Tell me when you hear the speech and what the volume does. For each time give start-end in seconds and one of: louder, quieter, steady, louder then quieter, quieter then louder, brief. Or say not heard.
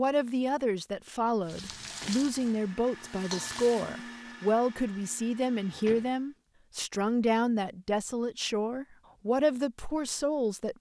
0.0-10.7 steady.